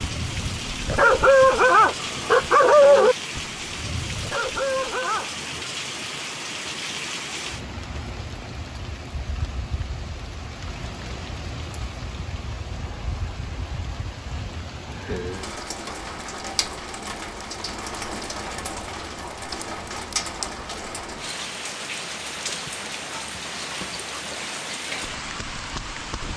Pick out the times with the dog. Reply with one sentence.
The dog can be heard from 0.0 to 5.5 s.